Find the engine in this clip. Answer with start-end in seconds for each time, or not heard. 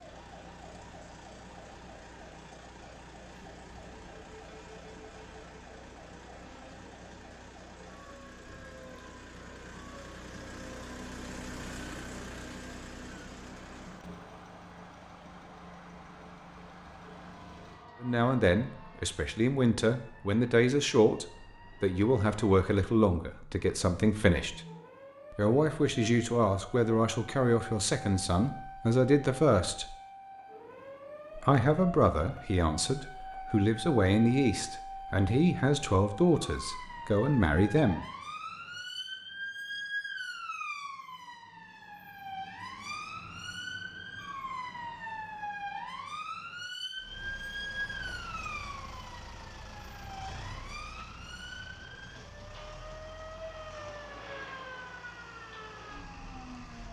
0.0-17.9, 47.0-56.8.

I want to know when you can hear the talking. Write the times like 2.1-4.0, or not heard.
18.0-24.6, 25.4-29.9, 31.4-38.0.